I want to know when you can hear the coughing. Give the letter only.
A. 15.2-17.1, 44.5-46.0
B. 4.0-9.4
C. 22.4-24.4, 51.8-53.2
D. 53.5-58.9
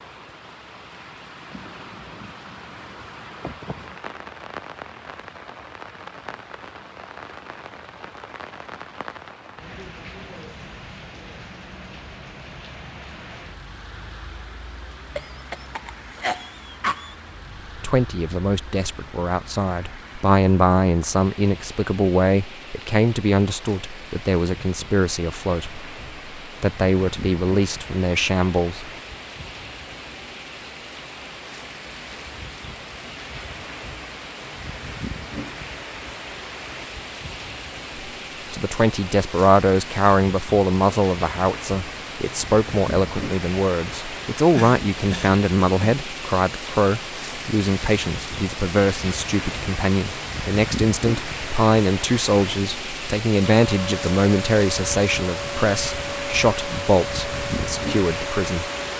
A.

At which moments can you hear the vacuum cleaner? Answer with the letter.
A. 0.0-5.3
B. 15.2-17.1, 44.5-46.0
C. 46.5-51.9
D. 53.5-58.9
D.